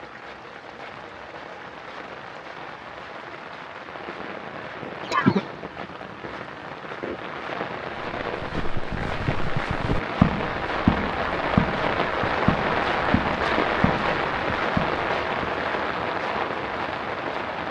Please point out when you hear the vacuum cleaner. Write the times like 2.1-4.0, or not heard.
not heard.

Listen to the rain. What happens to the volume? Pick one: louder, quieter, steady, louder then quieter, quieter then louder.
louder.